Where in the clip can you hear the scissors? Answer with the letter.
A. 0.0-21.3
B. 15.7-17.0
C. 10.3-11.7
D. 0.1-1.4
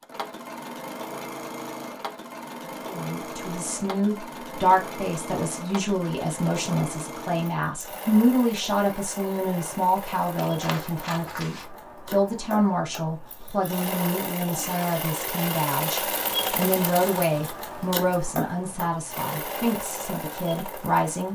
C.